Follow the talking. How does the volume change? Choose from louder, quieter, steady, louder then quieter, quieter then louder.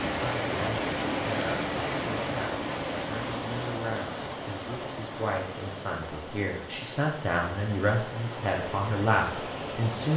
louder.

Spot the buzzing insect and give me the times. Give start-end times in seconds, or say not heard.
not heard.